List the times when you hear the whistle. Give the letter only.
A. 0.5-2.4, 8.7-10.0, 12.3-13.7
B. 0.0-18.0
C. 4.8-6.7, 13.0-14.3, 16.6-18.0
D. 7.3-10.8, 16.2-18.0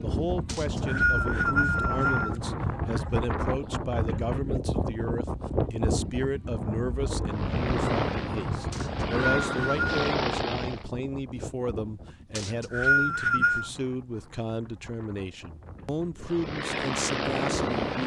A.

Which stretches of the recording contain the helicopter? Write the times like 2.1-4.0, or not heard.
7.3-10.8, 16.2-18.0.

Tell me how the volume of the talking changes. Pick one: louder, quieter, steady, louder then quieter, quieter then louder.
steady.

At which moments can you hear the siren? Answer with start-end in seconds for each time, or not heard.
not heard.